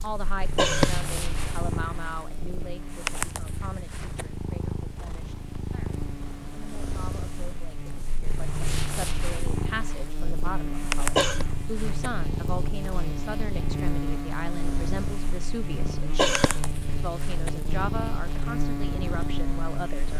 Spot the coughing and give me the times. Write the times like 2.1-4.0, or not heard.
0.2-0.9, 10.9-11.4, 15.8-16.8.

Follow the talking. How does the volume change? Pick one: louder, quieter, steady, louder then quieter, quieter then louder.
quieter then louder.